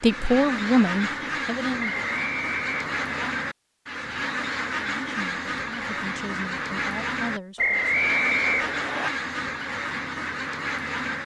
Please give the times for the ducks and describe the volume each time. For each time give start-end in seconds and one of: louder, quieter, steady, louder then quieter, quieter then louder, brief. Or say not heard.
0.0-11.2 steady.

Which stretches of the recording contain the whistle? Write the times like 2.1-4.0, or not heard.
1.8-3.4, 7.5-9.1.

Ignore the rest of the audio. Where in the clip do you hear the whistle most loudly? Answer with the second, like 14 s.
8 s.